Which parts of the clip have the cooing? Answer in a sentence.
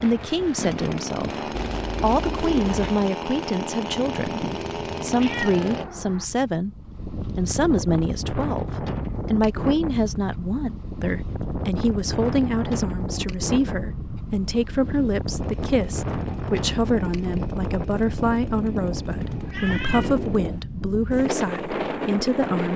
The cooing can be heard from 1.5 to 3.0 s.